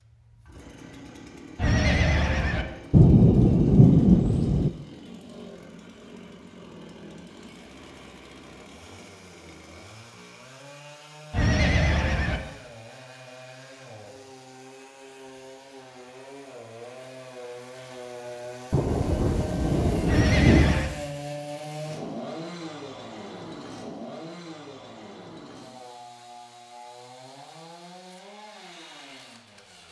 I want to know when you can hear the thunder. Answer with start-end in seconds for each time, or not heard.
2.9-4.7, 18.7-20.8.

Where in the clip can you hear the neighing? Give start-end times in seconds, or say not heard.
1.6-2.6, 11.3-12.4, 20.1-20.9.